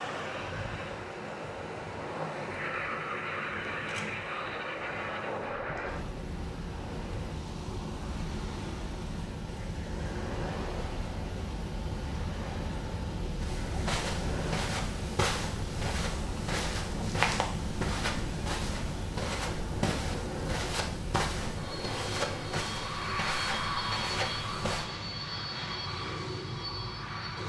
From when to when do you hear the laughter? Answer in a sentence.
The laughter can't be heard in this clip.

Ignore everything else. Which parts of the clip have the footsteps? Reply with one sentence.
The footsteps can be heard from 13.4 to 24.9 s.